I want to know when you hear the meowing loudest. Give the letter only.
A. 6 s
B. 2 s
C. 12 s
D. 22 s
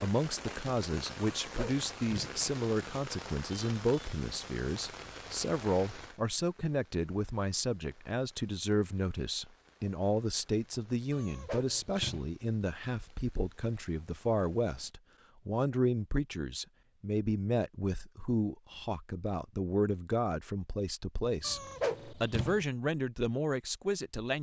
D.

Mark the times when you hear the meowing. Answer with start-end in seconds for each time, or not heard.
1.4-2.4, 11.1-12.3, 21.4-22.6.